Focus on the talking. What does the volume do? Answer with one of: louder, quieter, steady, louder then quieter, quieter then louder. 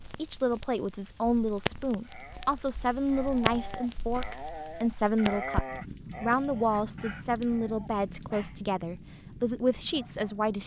steady.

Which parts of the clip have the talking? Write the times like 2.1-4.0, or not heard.
0.1-10.6.